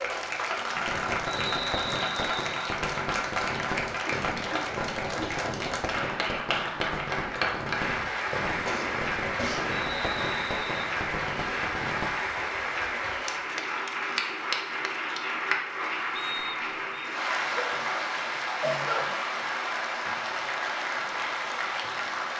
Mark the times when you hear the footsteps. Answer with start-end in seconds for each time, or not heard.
not heard.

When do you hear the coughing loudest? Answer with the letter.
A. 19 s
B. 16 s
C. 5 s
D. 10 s
A.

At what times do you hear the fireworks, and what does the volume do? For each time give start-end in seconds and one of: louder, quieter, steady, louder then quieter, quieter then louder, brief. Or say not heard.
0.8-12.1 steady.